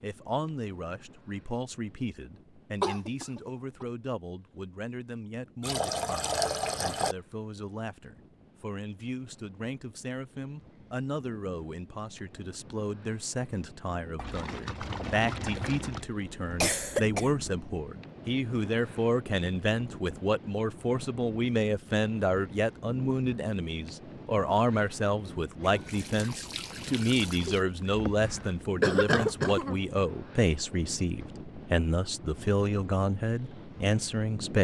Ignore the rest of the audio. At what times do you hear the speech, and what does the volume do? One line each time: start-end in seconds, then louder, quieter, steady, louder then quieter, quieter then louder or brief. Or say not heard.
0.0-34.5 louder.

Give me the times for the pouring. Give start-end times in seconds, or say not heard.
5.6-7.2, 14.2-16.1, 25.6-27.6.